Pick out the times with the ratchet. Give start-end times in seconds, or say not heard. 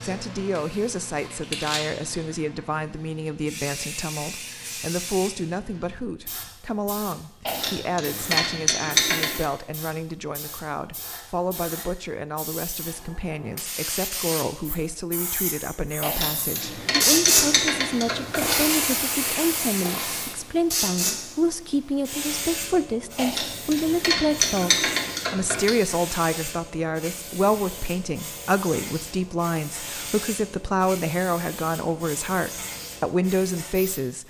7.5-9.4, 16.0-18.6, 23.1-25.8.